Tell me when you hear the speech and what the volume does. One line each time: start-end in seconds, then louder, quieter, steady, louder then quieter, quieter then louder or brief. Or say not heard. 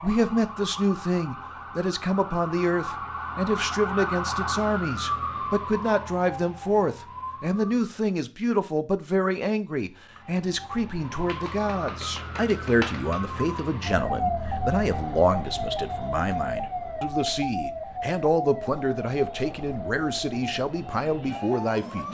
0.0-22.0 steady.